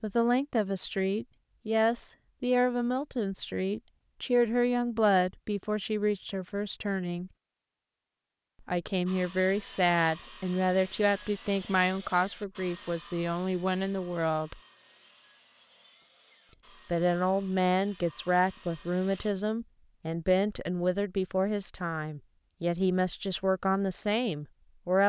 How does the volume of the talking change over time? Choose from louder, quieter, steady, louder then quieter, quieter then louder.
steady.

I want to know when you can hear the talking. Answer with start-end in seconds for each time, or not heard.
0.0-7.3, 8.7-14.6, 16.9-25.0.